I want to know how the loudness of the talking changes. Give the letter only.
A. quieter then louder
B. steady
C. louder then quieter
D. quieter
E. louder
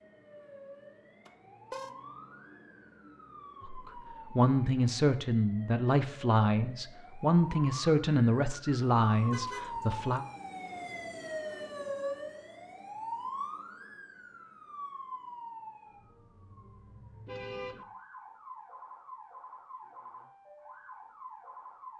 B.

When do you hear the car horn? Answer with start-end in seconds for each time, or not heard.
1.2-1.9, 9.3-10.0, 17.2-17.9.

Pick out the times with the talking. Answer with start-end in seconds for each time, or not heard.
3.6-10.2.